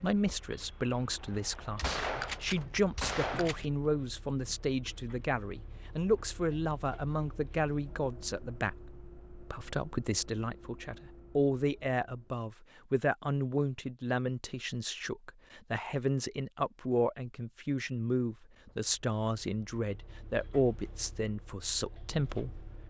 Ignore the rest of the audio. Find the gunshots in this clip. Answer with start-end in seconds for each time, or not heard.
1.8-3.6.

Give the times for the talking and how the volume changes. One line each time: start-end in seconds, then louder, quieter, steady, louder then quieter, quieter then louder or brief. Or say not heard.
0.0-22.8 steady.